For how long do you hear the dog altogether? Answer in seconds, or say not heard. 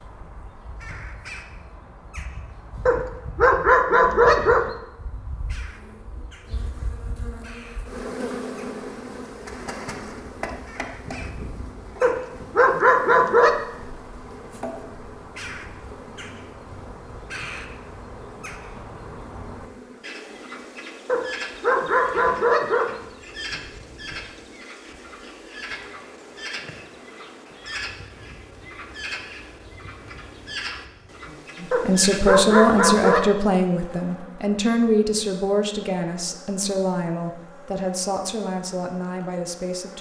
7 s.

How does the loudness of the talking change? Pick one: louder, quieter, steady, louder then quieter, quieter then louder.
quieter.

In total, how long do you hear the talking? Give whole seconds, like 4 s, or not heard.
8 s.